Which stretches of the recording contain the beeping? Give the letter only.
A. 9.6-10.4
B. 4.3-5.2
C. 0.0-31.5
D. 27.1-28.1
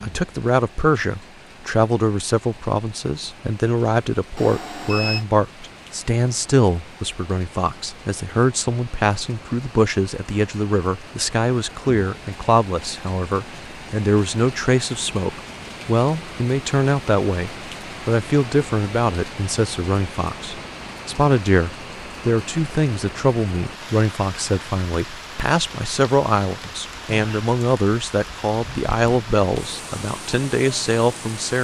B.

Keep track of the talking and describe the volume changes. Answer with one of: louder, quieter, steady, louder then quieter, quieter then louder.
steady.